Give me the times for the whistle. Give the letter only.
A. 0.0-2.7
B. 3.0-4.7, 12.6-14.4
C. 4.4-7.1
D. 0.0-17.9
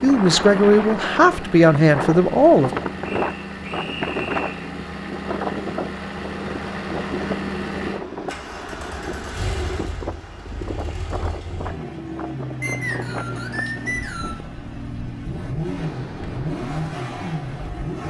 B.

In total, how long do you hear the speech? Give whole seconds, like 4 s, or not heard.
3 s.